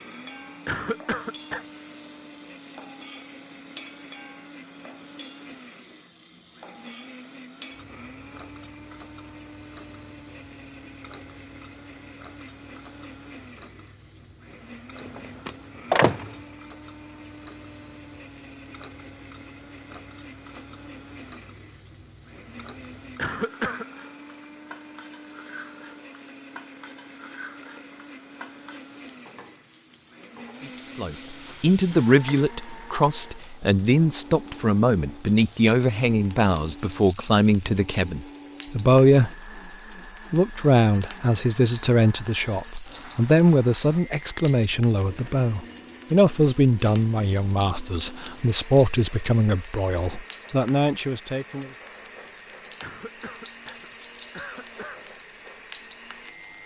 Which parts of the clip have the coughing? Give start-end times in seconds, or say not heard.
0.7-1.6, 23.1-23.9, 52.8-55.0.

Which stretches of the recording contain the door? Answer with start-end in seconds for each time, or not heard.
15.1-16.4.